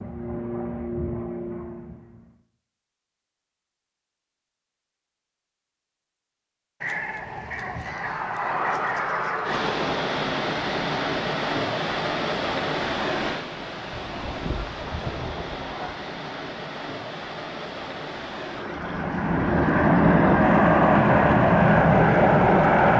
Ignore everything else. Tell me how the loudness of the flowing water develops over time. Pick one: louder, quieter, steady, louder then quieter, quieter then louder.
quieter.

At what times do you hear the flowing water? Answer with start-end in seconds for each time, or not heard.
9.4-22.9.